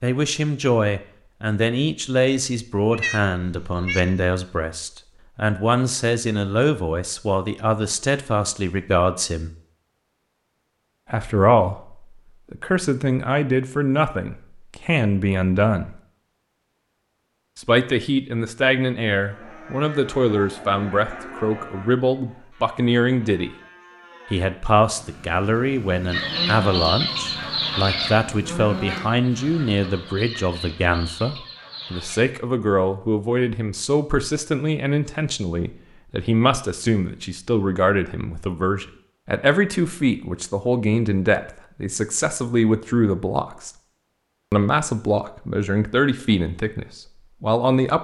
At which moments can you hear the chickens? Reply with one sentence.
The chickens can be heard from 26.1 to 32.2 s.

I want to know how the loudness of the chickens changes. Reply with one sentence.
The loudness of the chickens goes down.